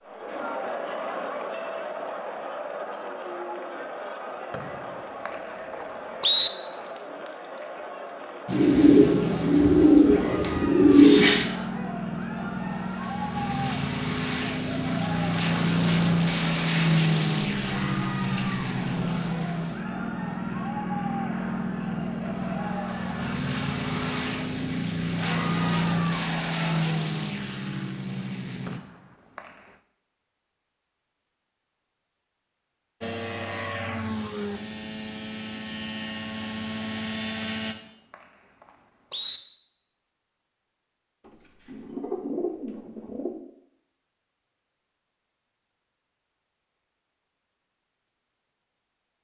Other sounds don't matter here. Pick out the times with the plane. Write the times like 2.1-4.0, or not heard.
8.4-28.8, 33.0-37.8.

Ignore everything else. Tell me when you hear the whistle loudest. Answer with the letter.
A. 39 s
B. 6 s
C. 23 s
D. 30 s
B.